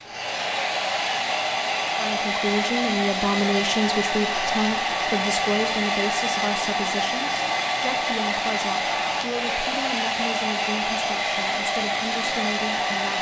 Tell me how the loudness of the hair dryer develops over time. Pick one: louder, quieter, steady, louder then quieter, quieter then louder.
steady.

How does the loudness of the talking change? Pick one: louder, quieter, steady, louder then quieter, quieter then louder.
quieter.